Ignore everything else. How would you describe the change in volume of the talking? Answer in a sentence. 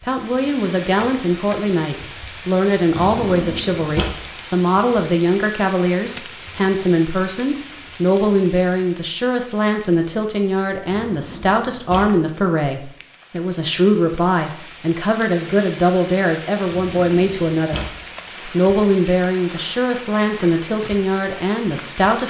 The volume of the talking stays about the same.